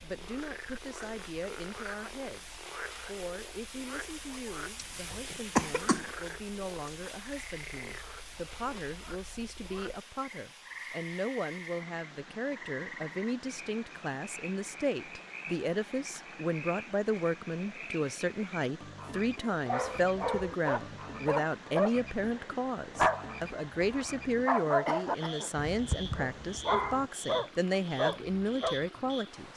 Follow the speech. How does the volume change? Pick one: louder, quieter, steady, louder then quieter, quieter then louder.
louder.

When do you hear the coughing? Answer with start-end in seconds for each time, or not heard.
4.8-6.1, 24.9-26.0.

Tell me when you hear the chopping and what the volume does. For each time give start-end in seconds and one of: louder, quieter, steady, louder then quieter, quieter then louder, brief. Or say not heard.
not heard.